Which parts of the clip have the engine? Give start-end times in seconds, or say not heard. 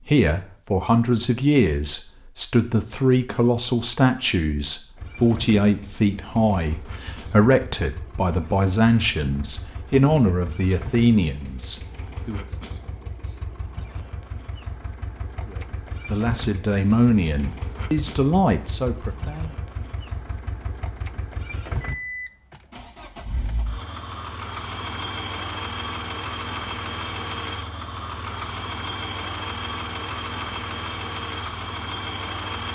5.0-32.7.